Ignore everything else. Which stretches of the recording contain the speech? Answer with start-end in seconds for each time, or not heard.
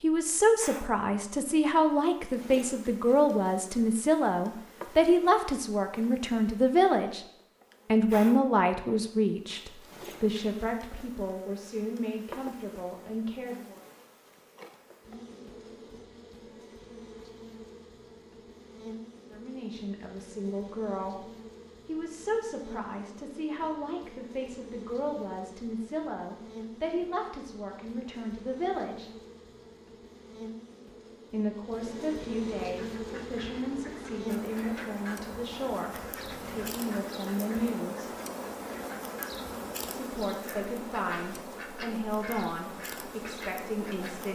0.0-7.2, 7.8-13.8, 19.3-29.1, 31.3-38.1, 39.9-44.3.